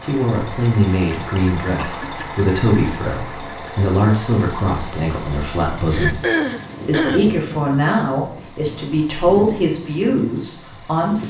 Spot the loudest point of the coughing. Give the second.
6 s.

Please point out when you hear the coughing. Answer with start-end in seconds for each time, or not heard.
1.4-2.2, 5.9-7.3.